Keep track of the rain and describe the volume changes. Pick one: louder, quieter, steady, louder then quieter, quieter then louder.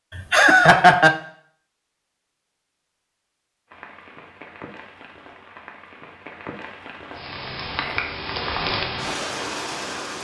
louder.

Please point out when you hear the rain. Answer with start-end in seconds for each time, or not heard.
3.7-10.2.